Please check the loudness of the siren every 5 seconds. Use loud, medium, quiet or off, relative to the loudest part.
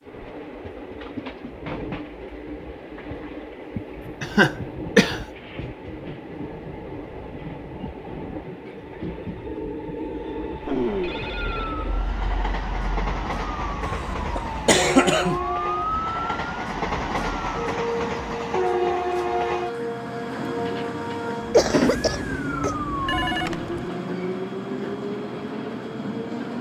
off, off, medium, loud, loud, off.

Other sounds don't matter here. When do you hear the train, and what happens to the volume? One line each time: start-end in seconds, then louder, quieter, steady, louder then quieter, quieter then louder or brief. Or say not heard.
0.0-26.5 louder.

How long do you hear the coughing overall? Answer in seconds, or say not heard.
4 s.